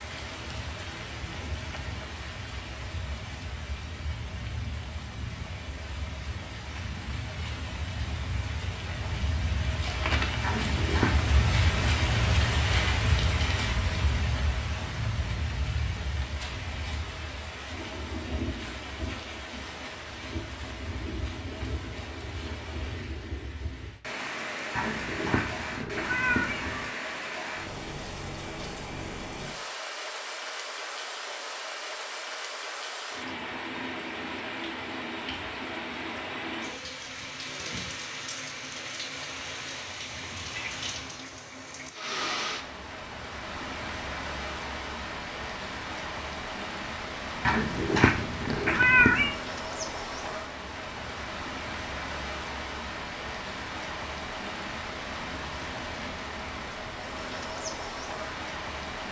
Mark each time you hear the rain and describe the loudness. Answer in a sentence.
The rain can be heard from 0.0 to 59.0 s, at a steady volume.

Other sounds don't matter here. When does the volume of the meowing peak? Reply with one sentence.
The volume of the meowing peaks at 49 seconds.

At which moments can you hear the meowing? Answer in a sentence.
You can hear the meowing from 10.4 to 11.3 s, from 24.8 to 26.9 s and from 47.5 to 49.4 s.